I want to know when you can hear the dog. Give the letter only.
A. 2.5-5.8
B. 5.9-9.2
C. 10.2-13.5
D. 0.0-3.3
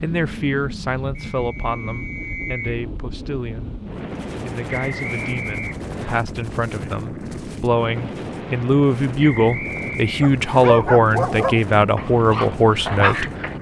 C.